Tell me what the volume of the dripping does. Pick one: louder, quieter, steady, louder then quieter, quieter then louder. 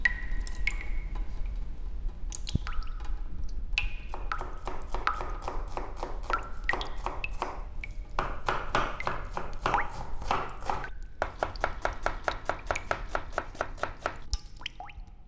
quieter.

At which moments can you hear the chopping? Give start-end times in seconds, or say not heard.
3.5-14.2.